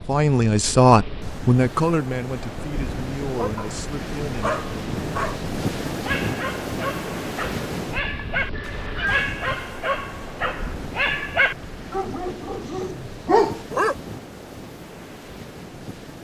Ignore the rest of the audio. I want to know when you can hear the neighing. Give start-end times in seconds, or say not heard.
8.5-9.3.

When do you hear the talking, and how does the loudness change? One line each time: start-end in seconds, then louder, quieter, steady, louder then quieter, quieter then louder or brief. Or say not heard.
0.0-4.6 quieter.